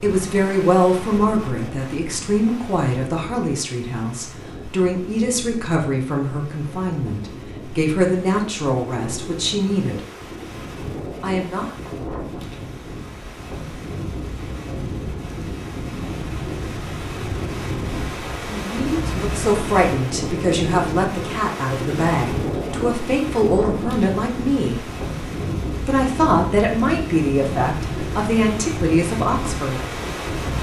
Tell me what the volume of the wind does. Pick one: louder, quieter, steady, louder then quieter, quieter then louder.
louder.